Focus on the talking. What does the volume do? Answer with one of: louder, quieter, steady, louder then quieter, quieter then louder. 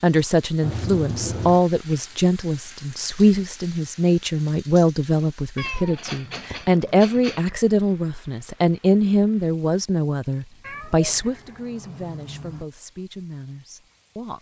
quieter.